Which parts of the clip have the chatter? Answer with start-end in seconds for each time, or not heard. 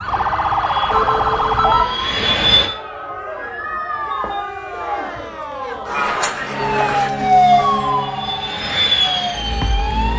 0.0-7.1.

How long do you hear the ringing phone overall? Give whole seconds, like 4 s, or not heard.
2 s.